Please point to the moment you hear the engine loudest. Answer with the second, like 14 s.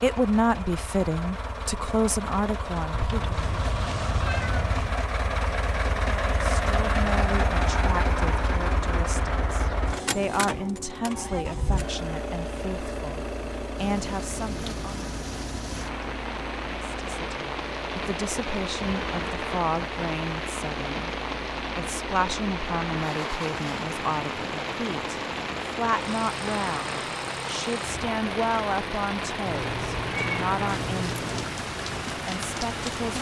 7 s.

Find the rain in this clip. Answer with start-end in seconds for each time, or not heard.
13.8-33.1.